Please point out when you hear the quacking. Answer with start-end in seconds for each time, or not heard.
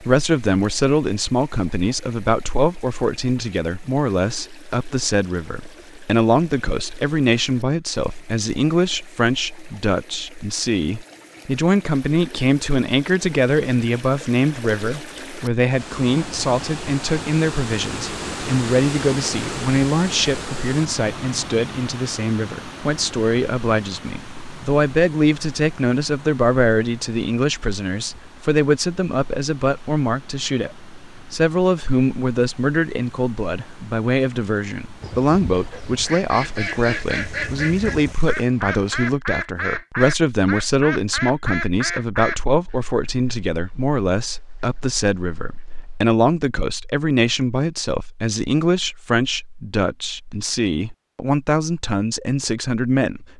35.0-46.0.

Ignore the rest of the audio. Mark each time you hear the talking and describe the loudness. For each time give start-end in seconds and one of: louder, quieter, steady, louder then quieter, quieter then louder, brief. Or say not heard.
0.0-53.3 steady.